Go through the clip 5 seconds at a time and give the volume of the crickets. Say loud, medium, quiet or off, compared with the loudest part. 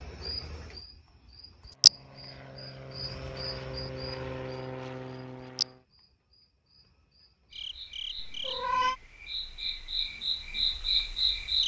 loud, medium, loud.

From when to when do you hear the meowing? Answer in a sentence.
The meowing can be heard from 8.2 to 8.9 s.